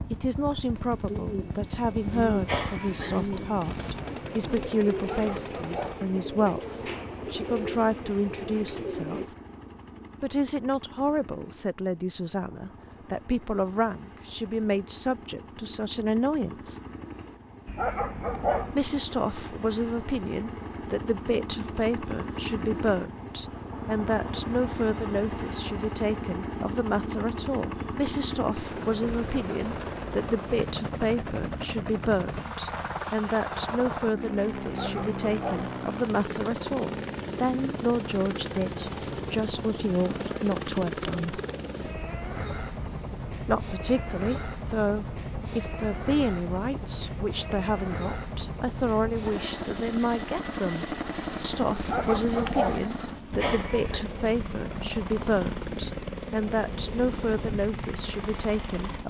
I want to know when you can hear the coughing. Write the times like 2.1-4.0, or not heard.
2.5-3.5, 53.4-54.0.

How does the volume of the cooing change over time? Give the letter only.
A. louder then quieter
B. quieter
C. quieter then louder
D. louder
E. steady
E.